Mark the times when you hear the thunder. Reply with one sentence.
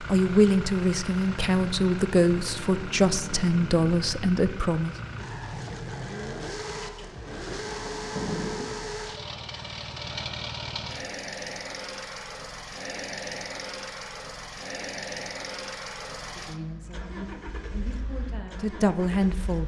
The thunder can be heard from 7.3 to 8.8 s.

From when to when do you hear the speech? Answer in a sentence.
The speech can be heard from 0.0 to 5.0 s and from 16.2 to 19.6 s.